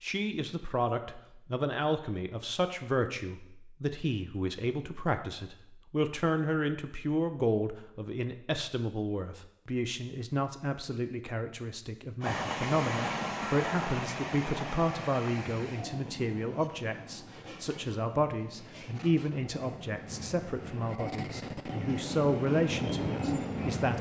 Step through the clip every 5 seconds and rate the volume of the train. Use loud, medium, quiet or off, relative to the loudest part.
off, off, loud, medium, loud.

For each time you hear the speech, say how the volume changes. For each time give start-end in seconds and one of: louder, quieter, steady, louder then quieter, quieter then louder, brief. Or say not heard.
0.0-23.9 steady.